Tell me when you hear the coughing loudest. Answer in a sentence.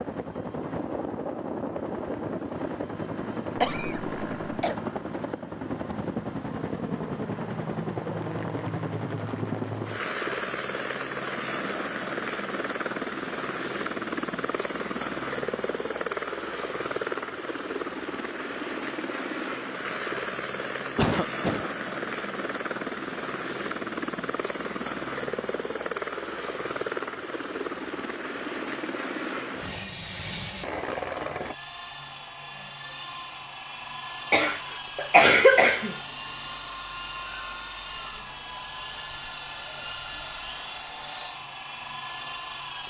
The volume of the coughing peaks at 35 seconds.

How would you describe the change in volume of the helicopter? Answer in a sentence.
The loudness of the helicopter stays about the same.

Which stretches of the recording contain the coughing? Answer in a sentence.
You can hear the coughing from 3.5 to 4.8 s, from 20.9 to 21.7 s and from 34.3 to 36.0 s.